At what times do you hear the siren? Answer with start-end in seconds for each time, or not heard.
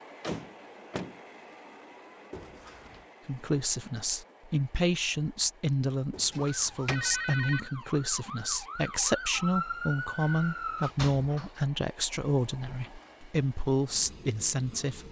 6.5-10.9.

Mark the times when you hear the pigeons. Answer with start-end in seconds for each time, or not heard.
not heard.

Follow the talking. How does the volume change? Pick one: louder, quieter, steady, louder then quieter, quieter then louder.
steady.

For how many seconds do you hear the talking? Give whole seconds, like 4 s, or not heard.
12 s.